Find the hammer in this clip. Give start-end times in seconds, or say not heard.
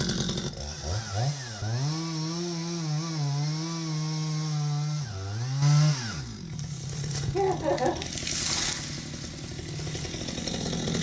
not heard.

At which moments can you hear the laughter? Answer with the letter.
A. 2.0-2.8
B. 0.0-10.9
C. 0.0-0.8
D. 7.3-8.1
D.